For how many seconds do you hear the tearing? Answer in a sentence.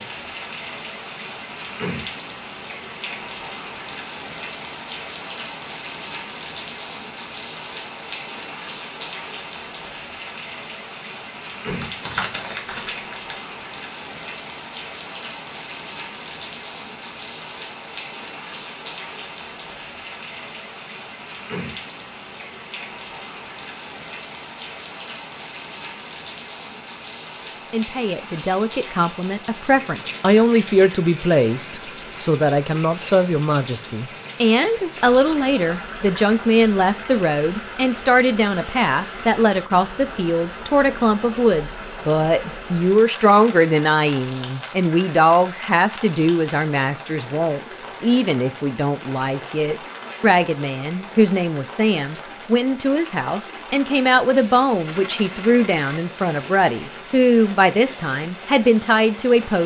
The tearing can be heard for 2 seconds in total.